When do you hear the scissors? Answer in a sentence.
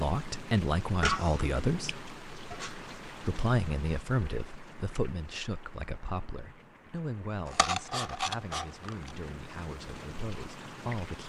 The scissors can be heard from 1.0 to 2.8 s and from 7.5 to 8.9 s.